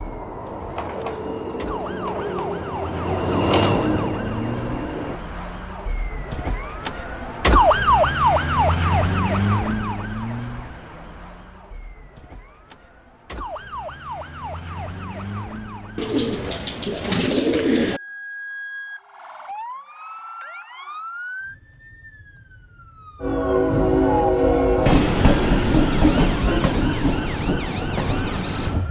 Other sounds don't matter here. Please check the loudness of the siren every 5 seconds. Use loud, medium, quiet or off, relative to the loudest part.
medium, loud, quiet, quiet, quiet, quiet.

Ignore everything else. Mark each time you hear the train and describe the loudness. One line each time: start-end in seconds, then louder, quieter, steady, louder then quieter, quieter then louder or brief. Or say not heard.
0.0-5.2 louder then quieter
23.2-28.8 quieter.